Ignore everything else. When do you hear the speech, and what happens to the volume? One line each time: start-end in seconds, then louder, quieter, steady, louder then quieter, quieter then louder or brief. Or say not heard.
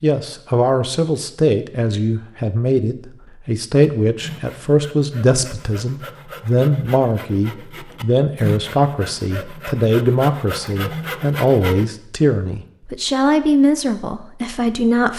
0.0-15.1 steady.